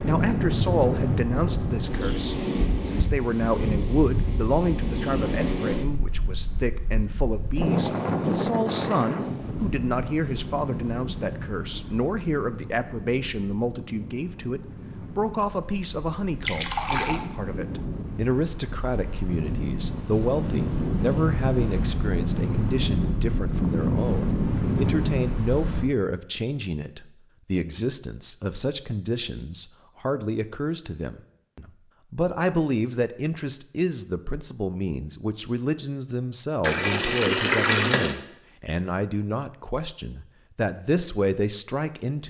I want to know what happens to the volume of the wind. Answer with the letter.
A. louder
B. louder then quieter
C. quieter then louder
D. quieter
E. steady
C.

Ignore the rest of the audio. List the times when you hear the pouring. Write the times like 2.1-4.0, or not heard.
16.4-17.2, 36.6-38.1.